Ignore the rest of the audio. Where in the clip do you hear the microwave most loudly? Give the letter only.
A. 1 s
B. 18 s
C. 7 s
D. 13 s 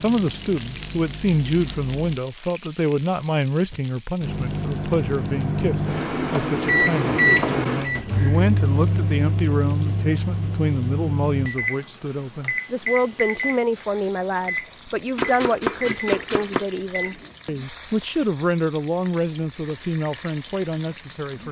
C.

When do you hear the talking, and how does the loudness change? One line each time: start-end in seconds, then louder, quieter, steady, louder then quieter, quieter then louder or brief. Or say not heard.
0.0-21.4 steady.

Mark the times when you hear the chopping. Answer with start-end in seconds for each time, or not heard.
15.2-16.6.